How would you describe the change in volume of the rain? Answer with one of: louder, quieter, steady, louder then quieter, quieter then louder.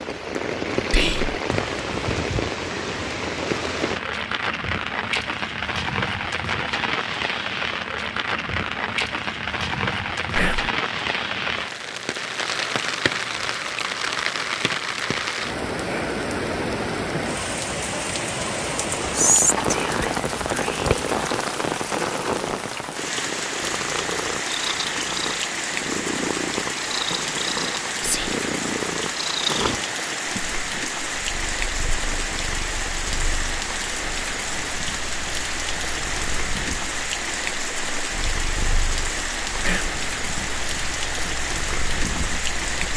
steady.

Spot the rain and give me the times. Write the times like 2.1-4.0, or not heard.
0.0-42.9.